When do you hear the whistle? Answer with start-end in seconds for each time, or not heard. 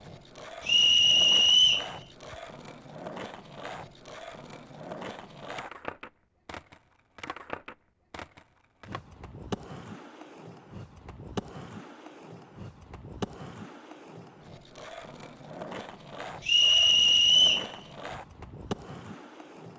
0.7-1.9, 16.4-17.7.